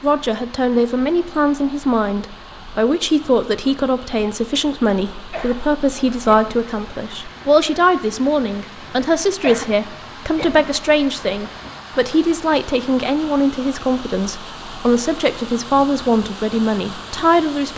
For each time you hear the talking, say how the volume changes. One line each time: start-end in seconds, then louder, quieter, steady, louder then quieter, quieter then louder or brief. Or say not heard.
0.0-17.7 steady.